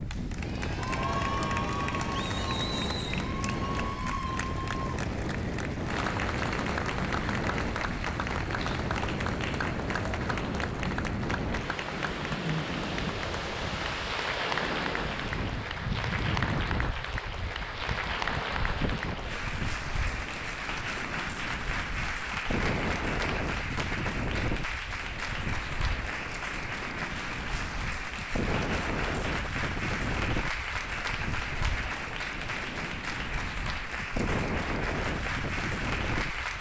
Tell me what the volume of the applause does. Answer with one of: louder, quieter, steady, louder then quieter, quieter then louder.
steady.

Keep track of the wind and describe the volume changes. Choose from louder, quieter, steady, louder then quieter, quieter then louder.
steady.